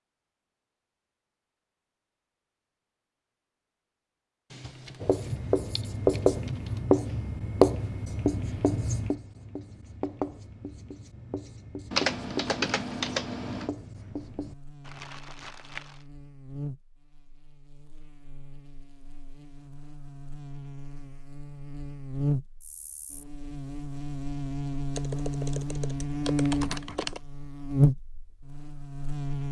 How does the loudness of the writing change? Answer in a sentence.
The volume of the writing goes down.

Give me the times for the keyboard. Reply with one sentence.
The keyboard can be heard from 4.5 to 6.8 s, from 11.9 to 13.7 s and from 24.9 to 27.2 s.